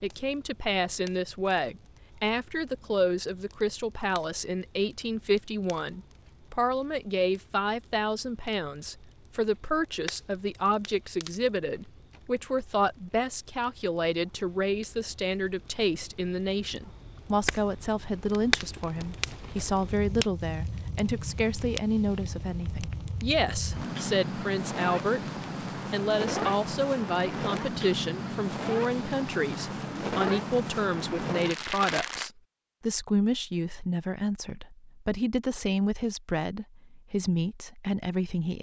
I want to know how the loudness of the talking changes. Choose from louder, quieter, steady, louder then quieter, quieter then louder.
steady.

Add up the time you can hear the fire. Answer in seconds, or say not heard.
32 s.